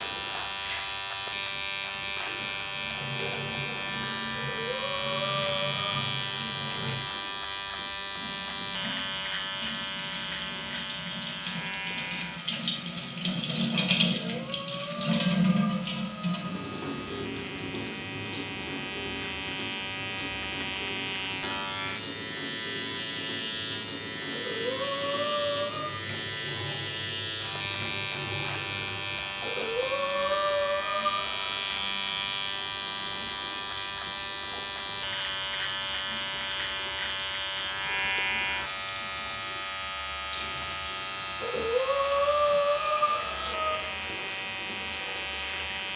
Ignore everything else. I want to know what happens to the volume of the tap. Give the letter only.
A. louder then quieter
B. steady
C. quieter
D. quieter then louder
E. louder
A.